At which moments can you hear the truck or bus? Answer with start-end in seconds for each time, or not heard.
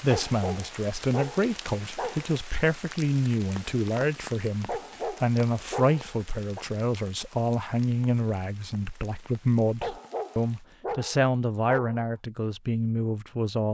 not heard.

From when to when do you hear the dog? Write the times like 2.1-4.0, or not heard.
0.1-2.4, 4.7-6.7, 9.8-12.1.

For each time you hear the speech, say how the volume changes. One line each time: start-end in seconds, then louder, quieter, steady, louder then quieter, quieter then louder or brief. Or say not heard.
0.0-13.7 steady.